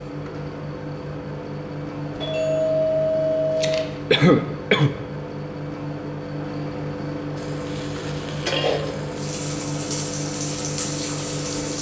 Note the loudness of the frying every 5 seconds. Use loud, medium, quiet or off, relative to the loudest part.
off, loud, loud.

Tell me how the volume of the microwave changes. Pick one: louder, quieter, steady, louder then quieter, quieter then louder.
steady.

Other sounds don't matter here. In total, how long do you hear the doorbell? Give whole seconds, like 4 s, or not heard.
2 s.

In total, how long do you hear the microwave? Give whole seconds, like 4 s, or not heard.
12 s.